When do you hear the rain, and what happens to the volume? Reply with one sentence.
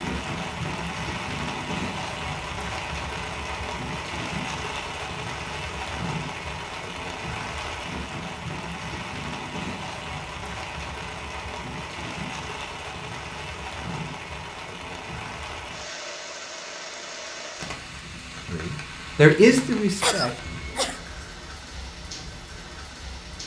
You can hear the rain from 0.0 to 23.4 s, getting quieter.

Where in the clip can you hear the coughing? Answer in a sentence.
The coughing can be heard from 20.0 to 21.0 s.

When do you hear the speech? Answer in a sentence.
You can hear the speech from 18.4 to 20.4 s.